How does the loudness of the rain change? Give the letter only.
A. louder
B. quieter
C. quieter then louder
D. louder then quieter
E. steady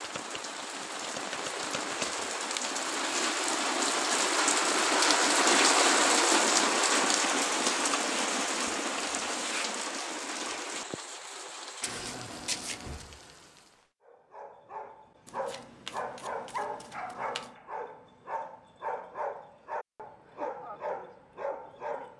D.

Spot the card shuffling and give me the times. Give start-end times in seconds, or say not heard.
0.0-2.2, 11.8-13.1, 15.2-17.6.